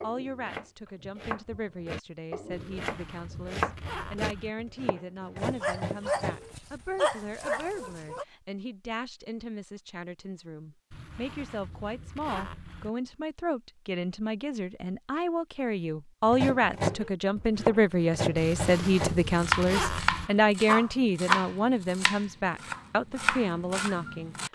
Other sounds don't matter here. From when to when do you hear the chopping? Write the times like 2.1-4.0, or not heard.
0.0-6.5, 16.2-24.5.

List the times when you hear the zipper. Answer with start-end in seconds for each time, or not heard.
2.5-4.5, 10.9-12.9, 18.4-20.3.